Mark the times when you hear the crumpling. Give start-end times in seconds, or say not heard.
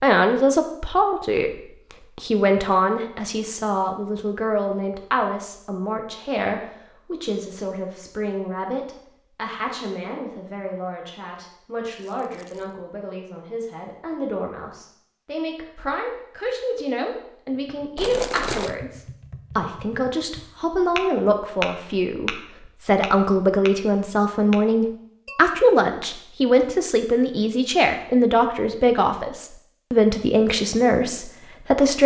12.0-12.7, 17.9-18.8.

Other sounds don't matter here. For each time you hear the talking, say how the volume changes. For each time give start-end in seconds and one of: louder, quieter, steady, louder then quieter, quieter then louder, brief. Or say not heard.
0.0-1.5 brief
2.1-32.0 quieter then louder.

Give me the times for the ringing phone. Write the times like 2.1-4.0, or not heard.
not heard.